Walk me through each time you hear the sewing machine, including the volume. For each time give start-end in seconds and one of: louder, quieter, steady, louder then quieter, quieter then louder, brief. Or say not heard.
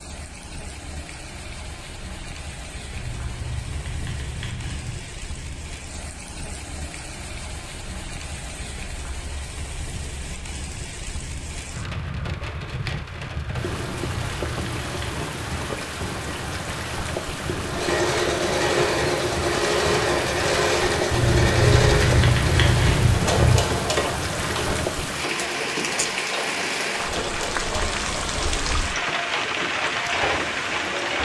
17.6-31.1 quieter.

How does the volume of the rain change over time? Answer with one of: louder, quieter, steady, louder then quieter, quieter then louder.
louder.